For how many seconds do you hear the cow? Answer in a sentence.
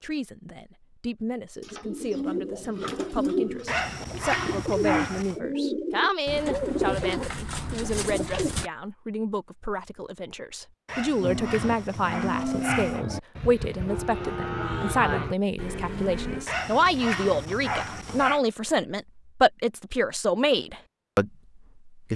You can hear the cow for 5 seconds altogether.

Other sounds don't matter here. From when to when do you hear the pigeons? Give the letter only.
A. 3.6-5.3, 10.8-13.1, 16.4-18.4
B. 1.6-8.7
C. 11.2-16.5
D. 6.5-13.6
B.